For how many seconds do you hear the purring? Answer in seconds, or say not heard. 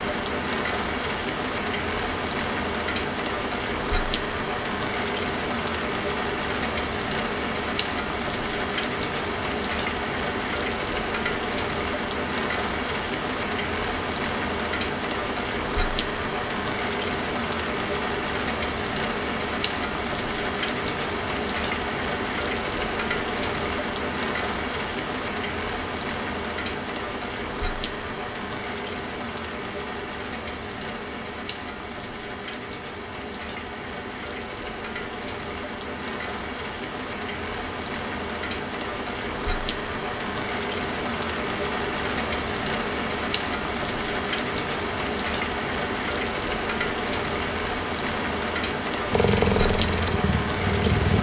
2 s.